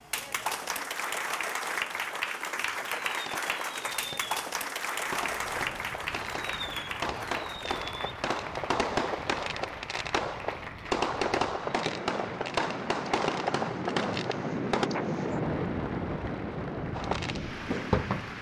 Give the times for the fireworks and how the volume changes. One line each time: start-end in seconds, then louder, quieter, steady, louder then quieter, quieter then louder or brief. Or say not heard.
2.9-14.9 louder
16.9-18.3 brief.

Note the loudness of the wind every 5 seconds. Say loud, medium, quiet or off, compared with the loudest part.
off, quiet, loud, loud.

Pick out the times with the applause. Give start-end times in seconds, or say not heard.
0.0-18.3.